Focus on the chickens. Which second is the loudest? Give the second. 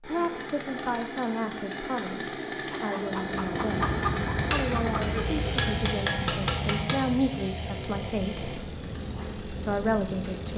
4 s.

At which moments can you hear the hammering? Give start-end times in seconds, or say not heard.
4.5-7.0.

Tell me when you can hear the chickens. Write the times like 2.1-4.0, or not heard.
2.8-5.2.